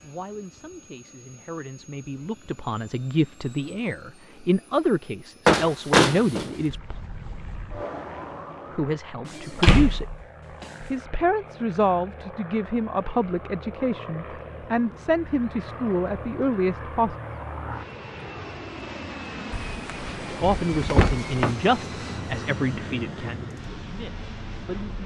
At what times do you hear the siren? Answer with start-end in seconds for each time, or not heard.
6.7-9.0.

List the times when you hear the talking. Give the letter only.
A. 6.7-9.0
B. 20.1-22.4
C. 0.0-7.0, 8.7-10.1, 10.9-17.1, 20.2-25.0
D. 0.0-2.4
C.